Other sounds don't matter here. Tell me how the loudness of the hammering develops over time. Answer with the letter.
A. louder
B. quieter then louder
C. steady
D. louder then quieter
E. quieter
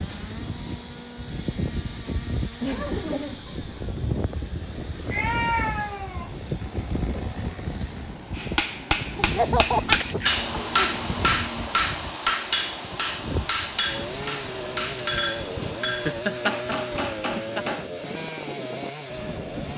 E.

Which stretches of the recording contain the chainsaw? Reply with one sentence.
The chainsaw can be heard from 0.0 to 19.7 s.